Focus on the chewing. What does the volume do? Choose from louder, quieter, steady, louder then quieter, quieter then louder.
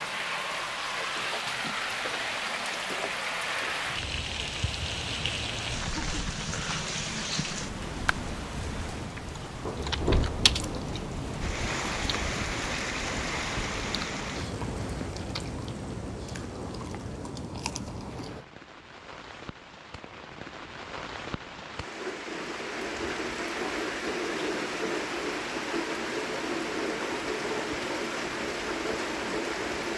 steady.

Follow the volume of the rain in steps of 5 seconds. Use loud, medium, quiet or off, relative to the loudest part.
loud, loud, loud, quiet, loud, loud.